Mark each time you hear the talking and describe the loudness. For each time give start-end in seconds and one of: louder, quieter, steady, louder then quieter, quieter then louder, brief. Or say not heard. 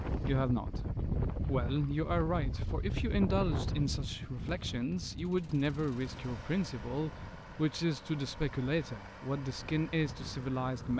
0.1-10.9 steady.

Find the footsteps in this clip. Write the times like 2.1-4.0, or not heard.
not heard.